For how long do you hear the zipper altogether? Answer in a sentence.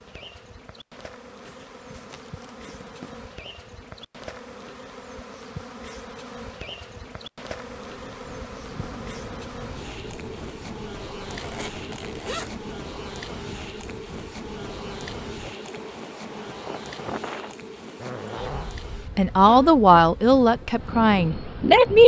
You can hear the zipper for 4 seconds altogether.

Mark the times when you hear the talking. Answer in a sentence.
You can hear the talking from 19.1 to 22.0 s.